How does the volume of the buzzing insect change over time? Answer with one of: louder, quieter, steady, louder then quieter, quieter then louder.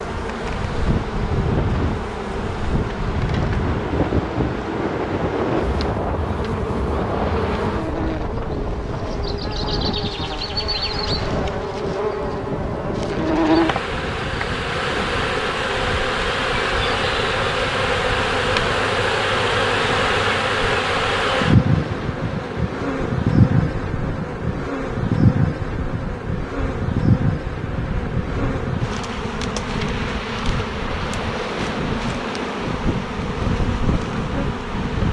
louder then quieter.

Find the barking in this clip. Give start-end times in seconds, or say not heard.
not heard.